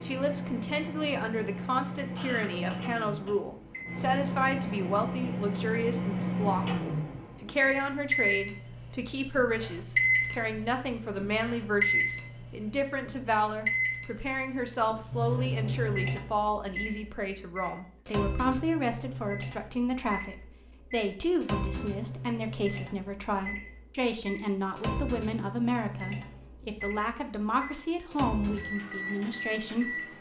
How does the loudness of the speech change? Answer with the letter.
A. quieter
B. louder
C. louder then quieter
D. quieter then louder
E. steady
E.